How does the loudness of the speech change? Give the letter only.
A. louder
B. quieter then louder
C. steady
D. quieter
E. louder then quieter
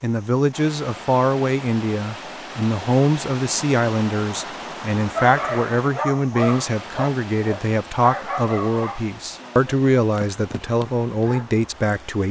C.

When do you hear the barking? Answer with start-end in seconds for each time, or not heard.
5.2-11.4.